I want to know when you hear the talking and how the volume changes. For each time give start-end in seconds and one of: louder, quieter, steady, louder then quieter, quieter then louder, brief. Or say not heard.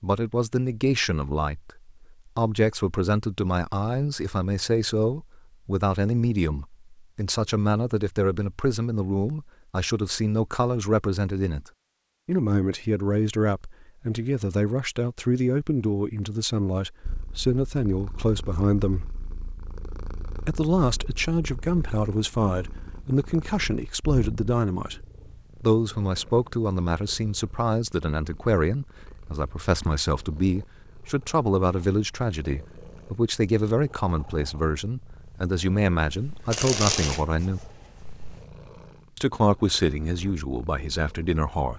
0.0-11.7 steady
12.2-19.1 steady
20.4-37.6 steady
39.1-41.7 brief.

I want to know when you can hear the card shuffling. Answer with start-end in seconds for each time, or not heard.
36.0-38.4.